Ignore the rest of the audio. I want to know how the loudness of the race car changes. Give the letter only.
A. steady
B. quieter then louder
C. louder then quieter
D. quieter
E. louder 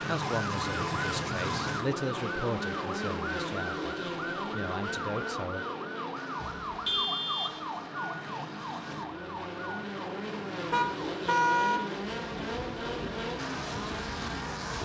B.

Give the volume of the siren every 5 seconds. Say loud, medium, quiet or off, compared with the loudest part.
loud, loud, medium.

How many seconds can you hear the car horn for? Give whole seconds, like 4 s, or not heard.
4 s.